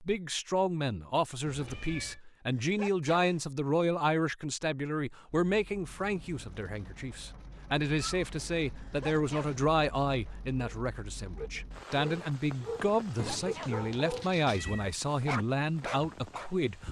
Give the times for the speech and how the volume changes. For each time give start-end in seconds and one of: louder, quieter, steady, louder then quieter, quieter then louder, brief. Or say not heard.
0.0-16.8 steady.